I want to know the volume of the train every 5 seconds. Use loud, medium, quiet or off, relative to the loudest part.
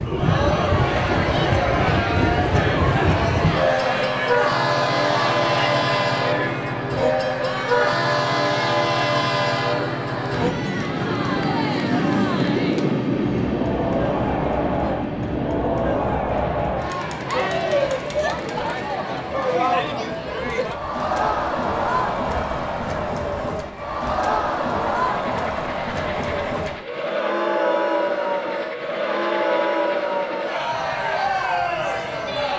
loud, loud, loud, medium, quiet, quiet, quiet.